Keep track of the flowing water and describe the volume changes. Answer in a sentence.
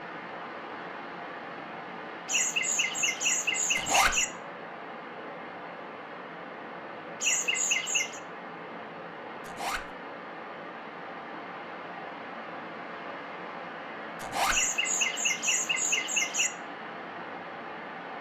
The loudness of the flowing water stays about the same.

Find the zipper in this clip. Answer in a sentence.
You can hear the zipper from 3.8 to 4.2 s, from 9.4 to 9.8 s and from 14.2 to 14.6 s.